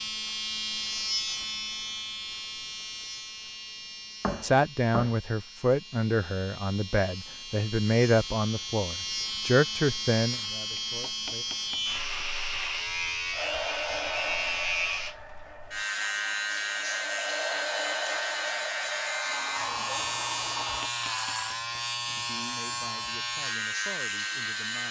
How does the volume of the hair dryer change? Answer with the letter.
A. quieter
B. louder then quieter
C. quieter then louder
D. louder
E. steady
C.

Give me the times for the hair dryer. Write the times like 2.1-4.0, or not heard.
13.3-20.9.